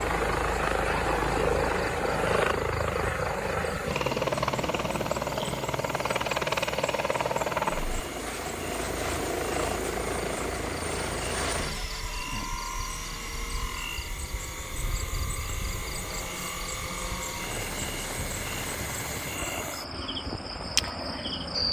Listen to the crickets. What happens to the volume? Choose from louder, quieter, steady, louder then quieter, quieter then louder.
louder.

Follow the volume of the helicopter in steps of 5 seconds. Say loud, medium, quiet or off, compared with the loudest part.
loud, loud, medium, medium, medium.